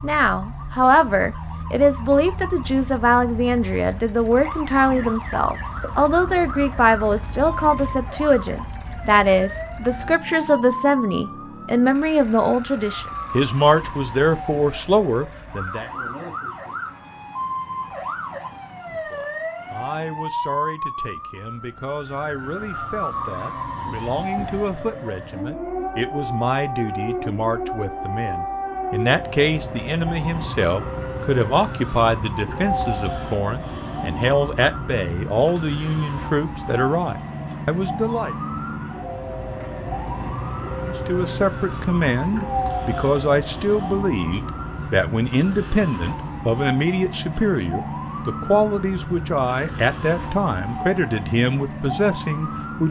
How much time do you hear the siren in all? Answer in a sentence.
The siren can be heard for 53 seconds in total.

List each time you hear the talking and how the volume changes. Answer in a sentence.
The talking can be heard from 0.0 to 15.8 s, at a steady volume; from 18.9 to 38.4 s, getting louder; and from 40.8 to 52.8 s, at a steady volume.